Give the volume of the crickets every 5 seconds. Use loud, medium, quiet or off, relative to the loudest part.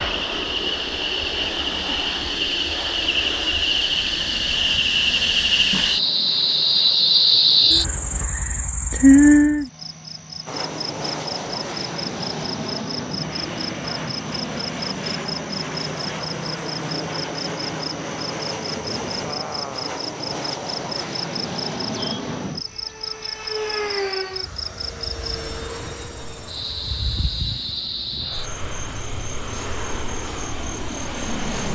medium, loud, quiet, quiet, quiet, quiet, quiet.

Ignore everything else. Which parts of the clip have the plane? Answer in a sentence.
You can hear the plane from 0.0 to 8.2 s and from 10.4 to 31.7 s.